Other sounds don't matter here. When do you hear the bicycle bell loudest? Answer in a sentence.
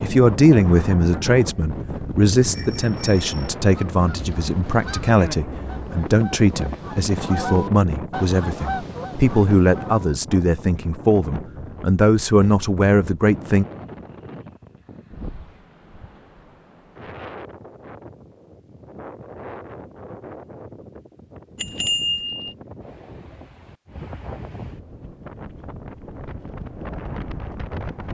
The volume of the bicycle bell peaks at 22 seconds.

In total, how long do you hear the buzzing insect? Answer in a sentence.
The buzzing insect can't be heard in this clip.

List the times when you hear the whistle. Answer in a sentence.
You can't hear the whistle here.